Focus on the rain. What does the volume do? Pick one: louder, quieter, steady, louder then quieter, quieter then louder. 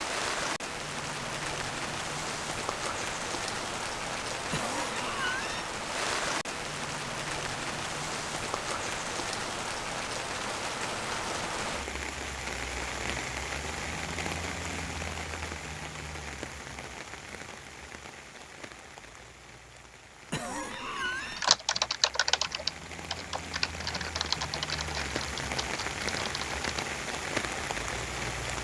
quieter then louder.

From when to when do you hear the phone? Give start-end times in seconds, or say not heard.
not heard.